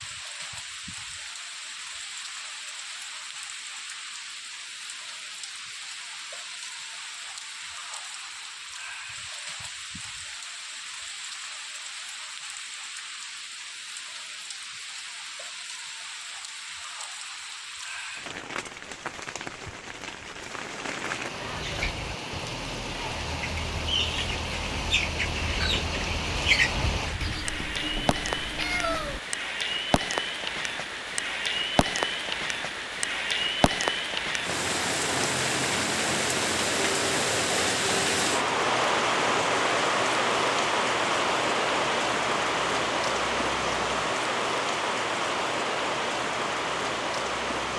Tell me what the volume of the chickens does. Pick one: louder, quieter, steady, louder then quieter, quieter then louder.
louder.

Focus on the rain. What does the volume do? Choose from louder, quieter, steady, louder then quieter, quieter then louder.
louder.